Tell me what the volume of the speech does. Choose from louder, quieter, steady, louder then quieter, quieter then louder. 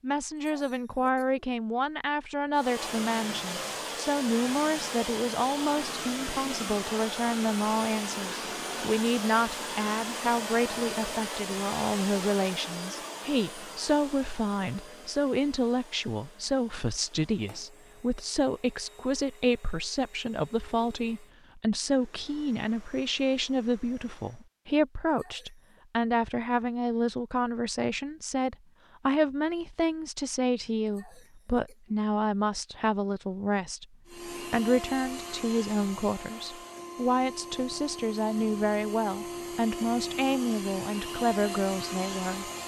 steady.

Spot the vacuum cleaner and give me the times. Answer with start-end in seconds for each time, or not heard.
2.5-24.5, 34.0-42.6.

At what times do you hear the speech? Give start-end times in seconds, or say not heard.
0.0-42.5.